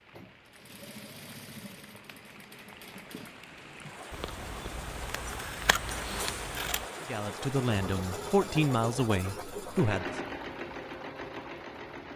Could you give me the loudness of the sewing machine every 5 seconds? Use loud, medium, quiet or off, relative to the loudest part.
medium, loud, loud.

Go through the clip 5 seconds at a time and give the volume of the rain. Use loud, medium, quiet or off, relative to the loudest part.
medium, loud, quiet.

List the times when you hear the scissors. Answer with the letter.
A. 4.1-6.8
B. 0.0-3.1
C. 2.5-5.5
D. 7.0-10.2
A.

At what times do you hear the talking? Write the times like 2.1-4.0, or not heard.
7.0-10.2.